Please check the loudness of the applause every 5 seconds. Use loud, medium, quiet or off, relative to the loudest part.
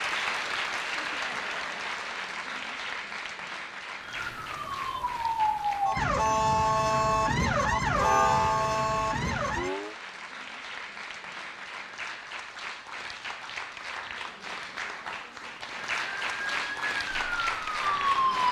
loud, medium, medium, loud.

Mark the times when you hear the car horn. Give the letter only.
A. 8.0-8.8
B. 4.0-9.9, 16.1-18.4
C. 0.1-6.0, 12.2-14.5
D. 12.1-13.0
A.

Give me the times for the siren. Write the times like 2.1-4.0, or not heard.
4.0-9.9, 16.1-18.4.